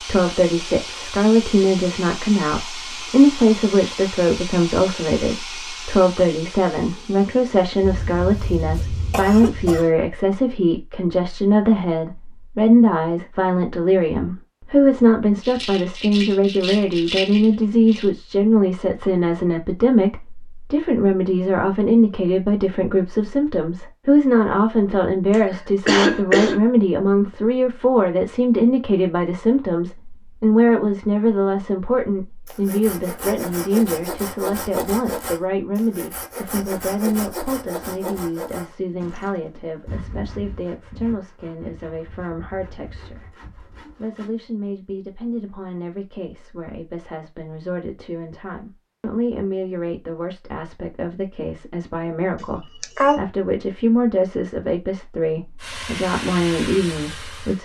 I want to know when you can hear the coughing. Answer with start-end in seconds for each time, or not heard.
7.8-9.8, 25.3-26.6, 52.4-53.2.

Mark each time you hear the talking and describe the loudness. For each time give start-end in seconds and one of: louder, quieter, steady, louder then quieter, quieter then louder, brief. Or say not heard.
0.0-57.6 quieter.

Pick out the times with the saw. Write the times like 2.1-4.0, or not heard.
32.5-44.3.